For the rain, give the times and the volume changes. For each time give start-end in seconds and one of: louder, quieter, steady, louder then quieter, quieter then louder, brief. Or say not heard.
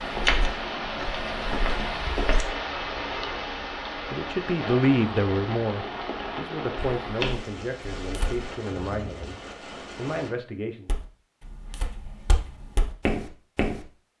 0.0-10.3 quieter.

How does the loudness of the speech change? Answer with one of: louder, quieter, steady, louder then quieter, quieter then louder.
quieter.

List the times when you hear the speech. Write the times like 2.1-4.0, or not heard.
4.0-10.9.